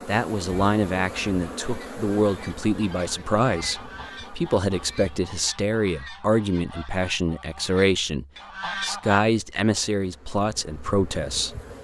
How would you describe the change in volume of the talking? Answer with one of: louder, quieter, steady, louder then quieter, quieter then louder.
steady.